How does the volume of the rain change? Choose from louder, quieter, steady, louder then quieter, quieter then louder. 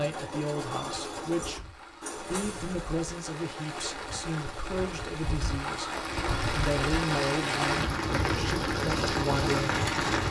louder.